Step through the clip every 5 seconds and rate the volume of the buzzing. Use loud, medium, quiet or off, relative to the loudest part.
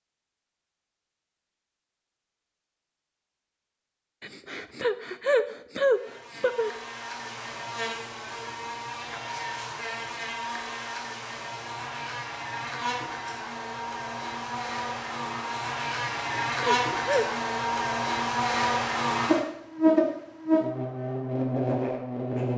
off, medium, medium, loud, loud.